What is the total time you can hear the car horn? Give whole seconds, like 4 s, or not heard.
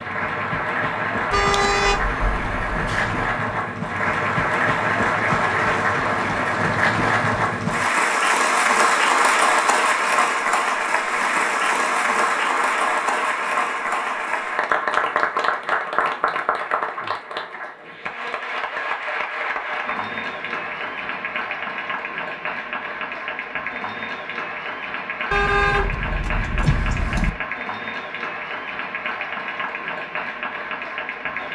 4 s.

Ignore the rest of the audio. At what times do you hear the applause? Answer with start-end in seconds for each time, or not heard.
0.0-31.4.